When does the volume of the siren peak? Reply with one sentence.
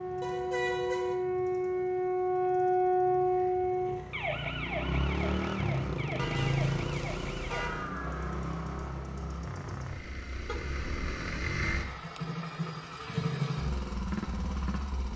The loudest moment of the siren is at 3 seconds.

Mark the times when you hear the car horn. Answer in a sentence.
You can hear the car horn from 0.2 to 1.2 s, from 6.2 to 7.9 s and from 10.4 to 11.9 s.